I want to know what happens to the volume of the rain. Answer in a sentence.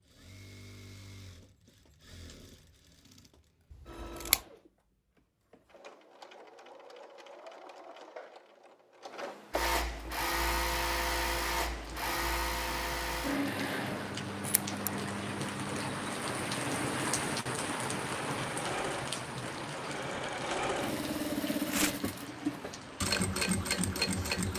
The loudness of the rain goes up, then down.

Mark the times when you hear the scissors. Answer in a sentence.
The scissors can be heard from 3.7 to 4.4 s and from 13.9 to 14.9 s.